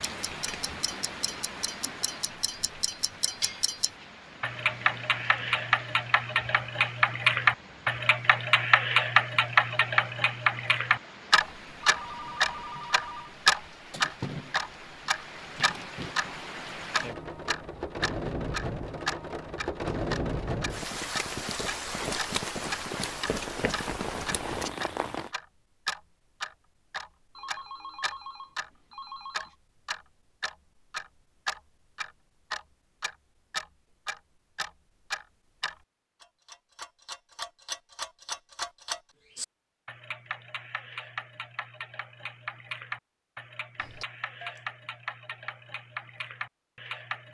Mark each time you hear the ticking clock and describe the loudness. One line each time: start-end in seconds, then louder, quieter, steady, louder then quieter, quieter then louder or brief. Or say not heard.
0.0-47.2 quieter.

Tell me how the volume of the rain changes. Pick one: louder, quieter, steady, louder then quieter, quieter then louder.
quieter then louder.